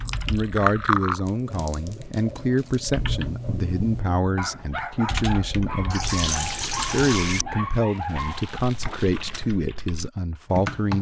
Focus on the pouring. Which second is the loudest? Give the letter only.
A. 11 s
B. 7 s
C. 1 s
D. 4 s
C.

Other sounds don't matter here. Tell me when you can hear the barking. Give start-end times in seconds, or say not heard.
2.9-8.6.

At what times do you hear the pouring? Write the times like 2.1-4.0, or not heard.
0.1-1.2, 5.9-7.5.